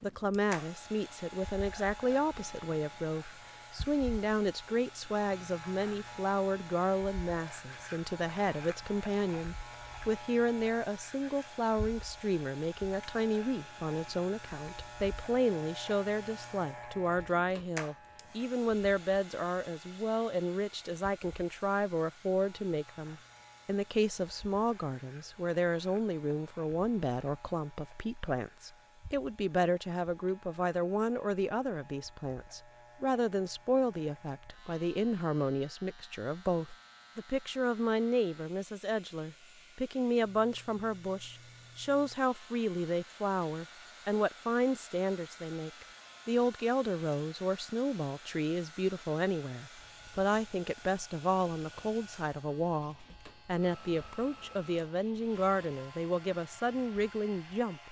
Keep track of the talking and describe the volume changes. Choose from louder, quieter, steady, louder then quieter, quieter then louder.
steady.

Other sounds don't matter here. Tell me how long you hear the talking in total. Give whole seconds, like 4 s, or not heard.
58 s.